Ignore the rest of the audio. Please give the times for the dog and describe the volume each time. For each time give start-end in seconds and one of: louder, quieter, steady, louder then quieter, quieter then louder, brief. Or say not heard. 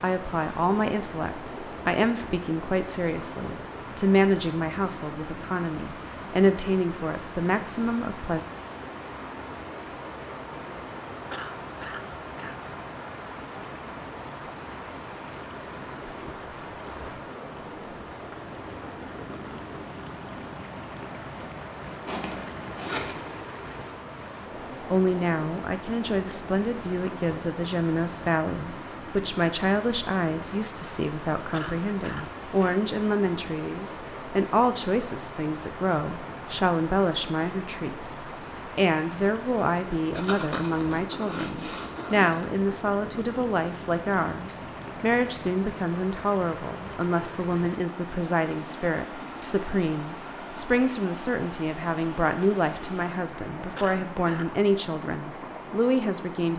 not heard.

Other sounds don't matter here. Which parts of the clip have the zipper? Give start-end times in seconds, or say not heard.
22.1-23.4, 40.1-42.5.